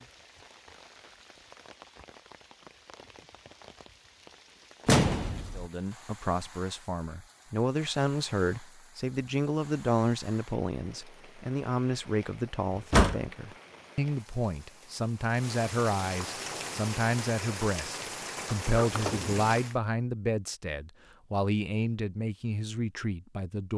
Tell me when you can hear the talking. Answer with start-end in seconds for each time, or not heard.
5.5-23.7.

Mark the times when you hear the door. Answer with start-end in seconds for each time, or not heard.
4.8-5.7, 12.8-13.2, 18.4-19.3.